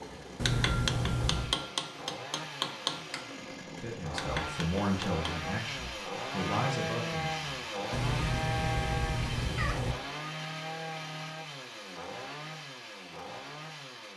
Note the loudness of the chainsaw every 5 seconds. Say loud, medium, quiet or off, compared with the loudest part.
medium, loud, medium.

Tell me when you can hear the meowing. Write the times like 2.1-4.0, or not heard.
0.3-1.6, 7.9-9.9.